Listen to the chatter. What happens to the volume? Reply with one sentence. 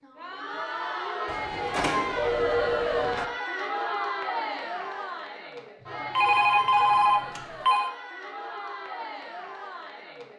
The volume of the chatter goes down.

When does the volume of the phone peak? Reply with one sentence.
The loudest moment of the phone is at 7 seconds.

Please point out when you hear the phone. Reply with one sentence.
You can hear the phone from 1.2 to 3.2 s and from 6.2 to 7.9 s.